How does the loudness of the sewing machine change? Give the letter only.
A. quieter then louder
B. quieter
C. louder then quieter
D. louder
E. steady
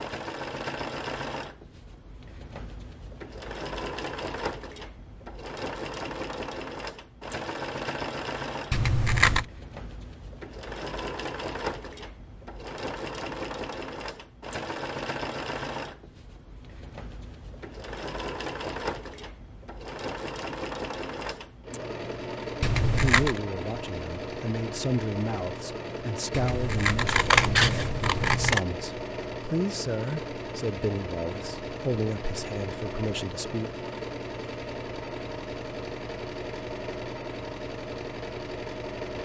E.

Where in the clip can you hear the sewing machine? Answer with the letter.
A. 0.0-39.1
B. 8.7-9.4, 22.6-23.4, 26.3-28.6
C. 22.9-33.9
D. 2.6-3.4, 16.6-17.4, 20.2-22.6
A.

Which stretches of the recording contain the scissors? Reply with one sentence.
The scissors can be heard from 8.7 to 9.4 s, from 22.6 to 23.4 s and from 26.3 to 28.6 s.